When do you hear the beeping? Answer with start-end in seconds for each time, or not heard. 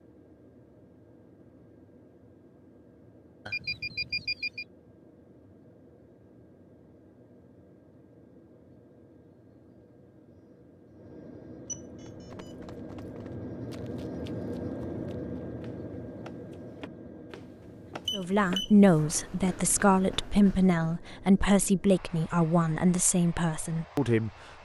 3.5-4.7, 11.7-12.6, 18.1-19.0.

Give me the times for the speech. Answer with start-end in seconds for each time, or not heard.
18.1-24.6.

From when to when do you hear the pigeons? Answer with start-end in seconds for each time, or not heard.
not heard.